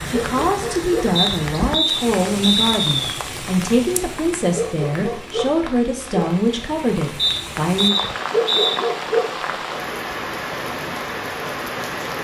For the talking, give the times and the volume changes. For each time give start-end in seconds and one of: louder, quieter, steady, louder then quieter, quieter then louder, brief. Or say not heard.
0.1-8.0 steady.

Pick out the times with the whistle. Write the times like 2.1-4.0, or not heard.
1.1-3.0, 7.2-8.8.